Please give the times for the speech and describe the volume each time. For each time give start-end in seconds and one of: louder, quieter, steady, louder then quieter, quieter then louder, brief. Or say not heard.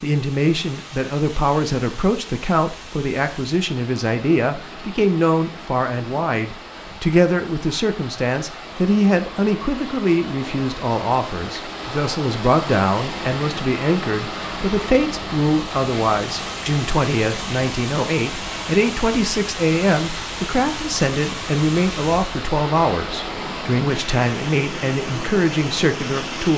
0.0-26.5 steady.